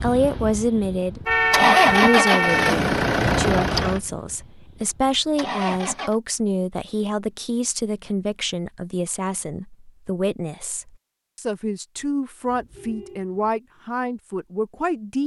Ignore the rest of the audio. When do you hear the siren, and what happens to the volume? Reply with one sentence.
The siren can't be heard in this clip.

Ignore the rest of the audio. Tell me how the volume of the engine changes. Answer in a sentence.
The loudness of the engine goes up, then down.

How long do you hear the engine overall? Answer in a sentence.
The engine can be heard for 6 seconds in total.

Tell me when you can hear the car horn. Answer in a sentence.
The car horn can be heard from 1.2 to 2.8 s and from 12.4 to 13.3 s.